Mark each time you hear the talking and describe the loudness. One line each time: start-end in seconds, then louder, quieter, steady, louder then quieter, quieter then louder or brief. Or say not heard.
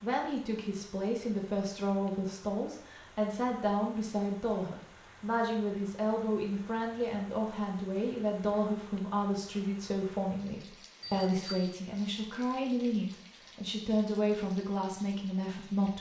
0.0-15.9 steady.